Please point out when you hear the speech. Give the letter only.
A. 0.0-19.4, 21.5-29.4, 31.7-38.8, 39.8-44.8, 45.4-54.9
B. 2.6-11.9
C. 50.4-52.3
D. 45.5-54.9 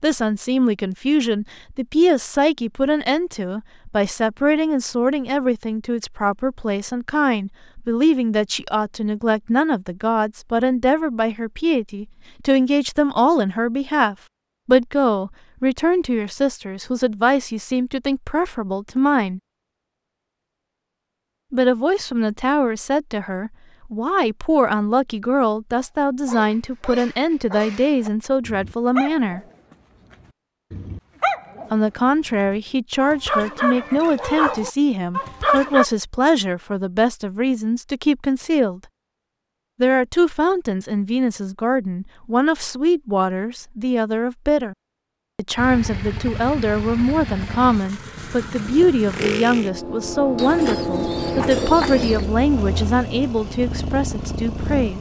A.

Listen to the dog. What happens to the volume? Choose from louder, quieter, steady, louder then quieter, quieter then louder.
louder.